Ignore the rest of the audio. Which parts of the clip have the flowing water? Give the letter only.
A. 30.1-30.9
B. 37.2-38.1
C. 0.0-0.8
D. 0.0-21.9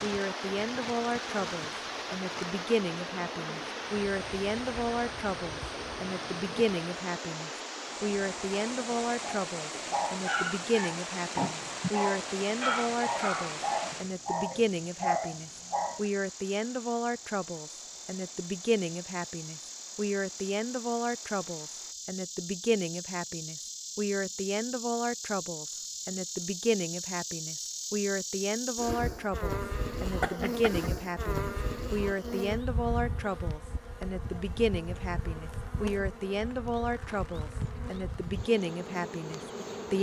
D.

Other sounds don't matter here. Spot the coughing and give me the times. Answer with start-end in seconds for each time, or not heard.
30.1-30.9.